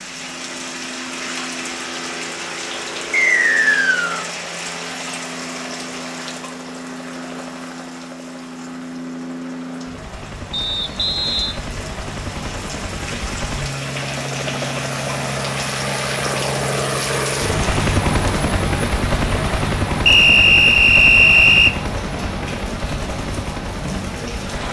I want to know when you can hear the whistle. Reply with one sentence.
You can hear the whistle from 3.1 to 4.2 s, from 10.5 to 11.6 s and from 20.1 to 21.8 s.